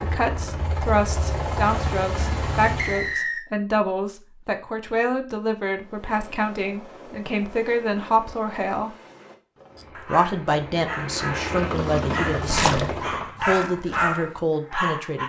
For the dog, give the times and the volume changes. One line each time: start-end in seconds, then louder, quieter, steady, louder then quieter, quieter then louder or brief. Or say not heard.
9.8-15.2 louder.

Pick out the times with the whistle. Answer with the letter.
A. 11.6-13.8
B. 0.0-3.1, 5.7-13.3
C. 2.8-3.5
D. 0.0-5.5
C.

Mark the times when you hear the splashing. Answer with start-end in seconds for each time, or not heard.
11.6-13.8.